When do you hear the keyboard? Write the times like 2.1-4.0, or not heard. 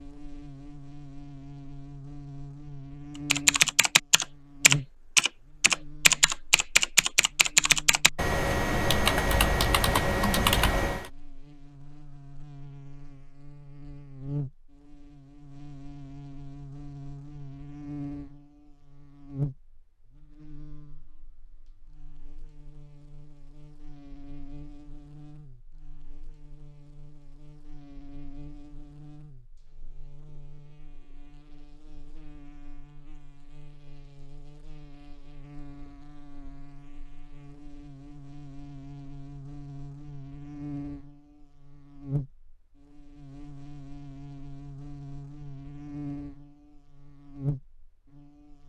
3.2-11.1.